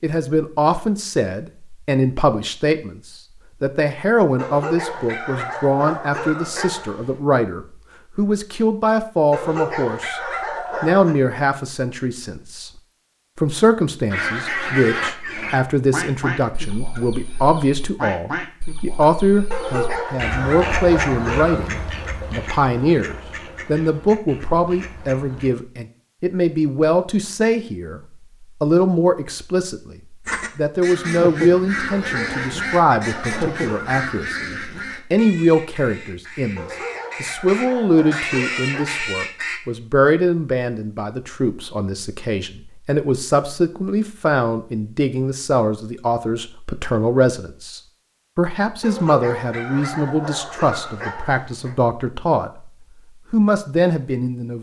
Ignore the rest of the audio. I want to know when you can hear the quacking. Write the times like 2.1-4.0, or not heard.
14.1-25.6, 30.2-39.6.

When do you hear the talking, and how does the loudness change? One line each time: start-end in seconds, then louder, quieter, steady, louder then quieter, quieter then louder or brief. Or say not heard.
0.0-12.7 steady
13.3-28.0 steady
28.6-52.7 steady
53.3-54.5 brief.